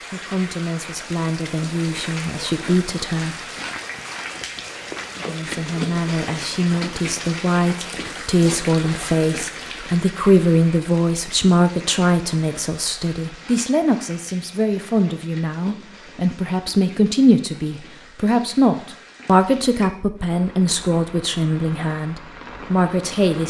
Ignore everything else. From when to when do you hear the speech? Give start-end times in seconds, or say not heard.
0.0-3.4, 5.2-23.4.